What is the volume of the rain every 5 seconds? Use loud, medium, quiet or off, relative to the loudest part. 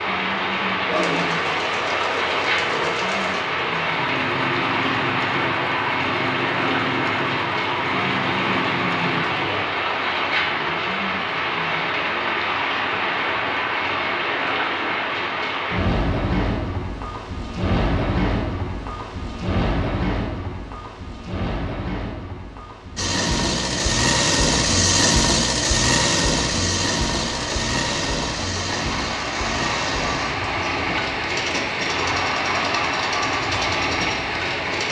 loud, loud, loud, loud, medium, medium, loud.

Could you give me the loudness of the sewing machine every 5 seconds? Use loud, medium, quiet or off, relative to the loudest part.
medium, medium, off, off, loud, loud, medium.